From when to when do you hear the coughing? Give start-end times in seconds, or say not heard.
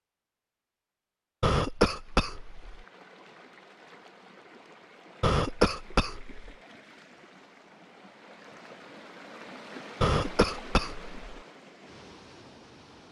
1.4-2.8, 5.2-6.5, 10.0-11.2.